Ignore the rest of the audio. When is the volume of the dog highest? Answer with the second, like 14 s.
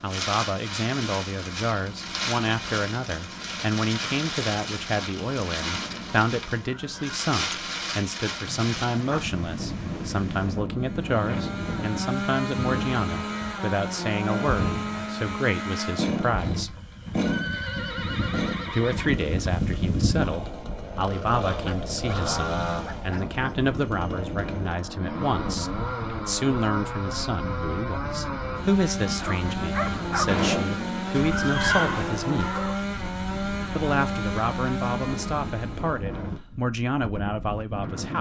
30 s.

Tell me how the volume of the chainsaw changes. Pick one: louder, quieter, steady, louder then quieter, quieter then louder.
steady.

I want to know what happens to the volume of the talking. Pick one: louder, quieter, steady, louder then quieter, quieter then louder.
steady.